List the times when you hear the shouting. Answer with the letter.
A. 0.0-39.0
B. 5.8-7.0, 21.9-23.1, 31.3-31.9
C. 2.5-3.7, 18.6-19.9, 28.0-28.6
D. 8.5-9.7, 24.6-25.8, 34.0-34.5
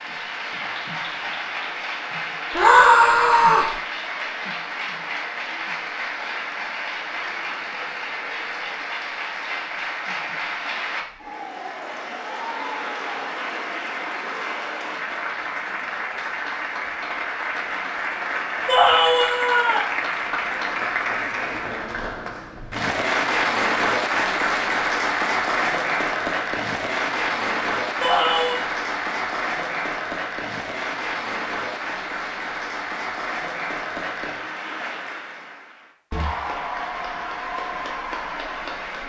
C.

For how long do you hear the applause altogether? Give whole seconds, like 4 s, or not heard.
39 s.